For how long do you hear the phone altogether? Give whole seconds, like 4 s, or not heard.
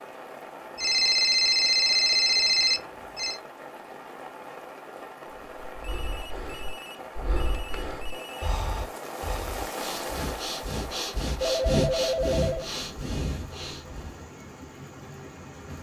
7 s.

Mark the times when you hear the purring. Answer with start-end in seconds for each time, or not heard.
not heard.